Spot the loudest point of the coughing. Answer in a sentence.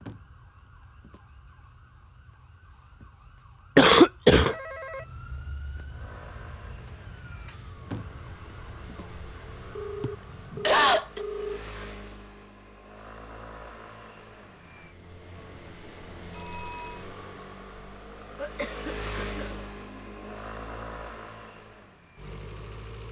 The volume of the coughing peaks at 4 seconds.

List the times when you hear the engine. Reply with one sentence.
You can hear the engine from 5.8 to 23.0 s.